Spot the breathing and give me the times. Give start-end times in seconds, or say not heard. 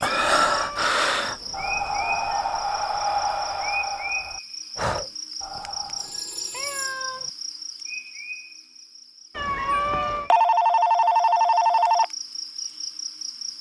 0.0-6.2.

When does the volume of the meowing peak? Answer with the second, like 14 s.
10 s.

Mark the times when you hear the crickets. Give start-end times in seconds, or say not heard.
0.0-13.5.